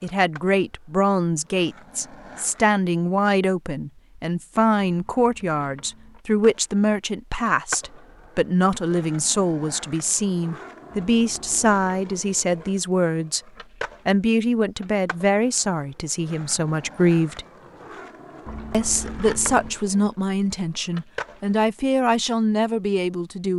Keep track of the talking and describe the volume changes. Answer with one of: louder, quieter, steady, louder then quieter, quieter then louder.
steady.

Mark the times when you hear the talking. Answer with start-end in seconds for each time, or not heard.
0.0-13.4, 14.1-17.4, 18.7-23.5.